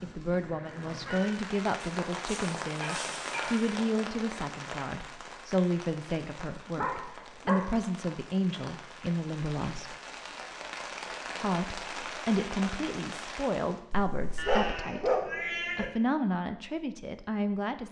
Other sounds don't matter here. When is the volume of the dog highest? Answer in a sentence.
The volume of the dog peaks at 15 seconds.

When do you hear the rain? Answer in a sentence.
The rain can be heard from 0.0 to 13.8 s.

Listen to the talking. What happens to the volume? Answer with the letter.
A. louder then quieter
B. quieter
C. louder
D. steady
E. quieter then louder
D.